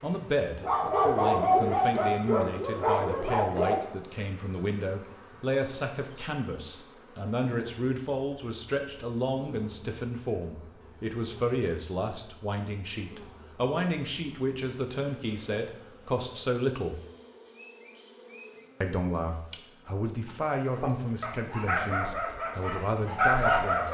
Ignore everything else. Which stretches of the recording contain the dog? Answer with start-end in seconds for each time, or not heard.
0.0-3.9, 20.8-23.8.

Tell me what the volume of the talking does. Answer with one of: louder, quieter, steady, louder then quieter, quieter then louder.
steady.